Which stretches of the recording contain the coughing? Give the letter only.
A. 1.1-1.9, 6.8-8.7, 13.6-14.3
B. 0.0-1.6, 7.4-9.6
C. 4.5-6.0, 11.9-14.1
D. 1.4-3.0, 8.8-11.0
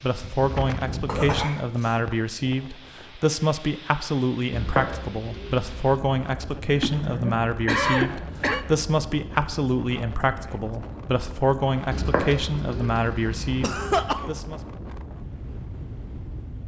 A.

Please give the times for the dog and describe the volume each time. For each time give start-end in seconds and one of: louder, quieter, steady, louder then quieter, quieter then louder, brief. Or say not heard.
not heard.